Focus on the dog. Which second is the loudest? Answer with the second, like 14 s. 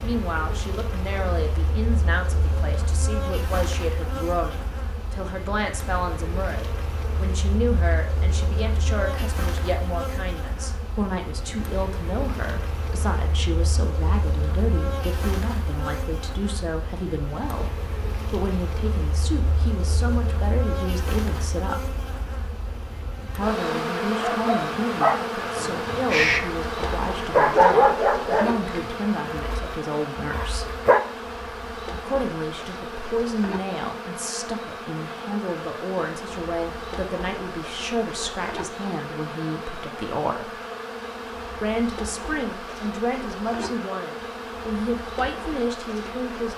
28 s.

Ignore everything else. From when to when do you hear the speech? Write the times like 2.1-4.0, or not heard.
0.0-22.0, 23.4-30.8, 31.9-40.5, 41.6-46.5.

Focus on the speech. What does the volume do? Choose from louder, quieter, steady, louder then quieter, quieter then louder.
steady.